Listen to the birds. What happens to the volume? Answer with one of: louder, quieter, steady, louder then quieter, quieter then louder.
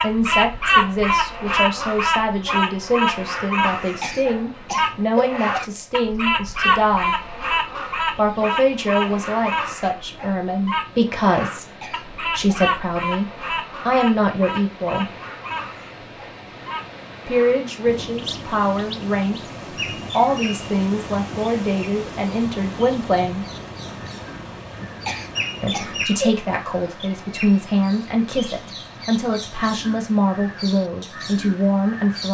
quieter.